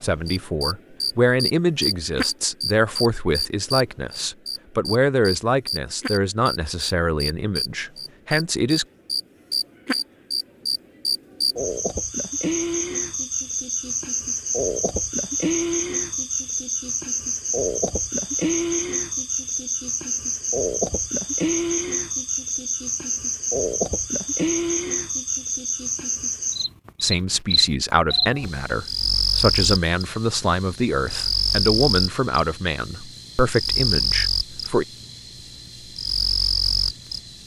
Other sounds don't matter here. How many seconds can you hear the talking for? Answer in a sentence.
You can hear the talking for 17 seconds altogether.